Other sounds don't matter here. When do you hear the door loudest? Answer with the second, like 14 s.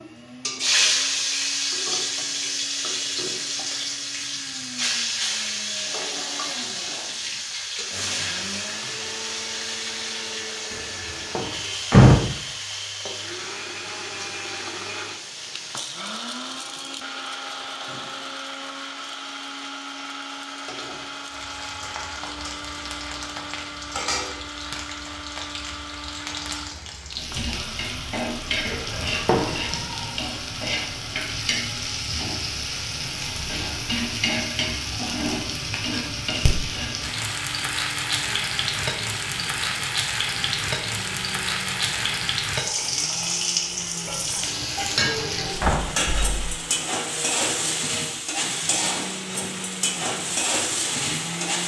12 s.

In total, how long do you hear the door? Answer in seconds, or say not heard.
4 s.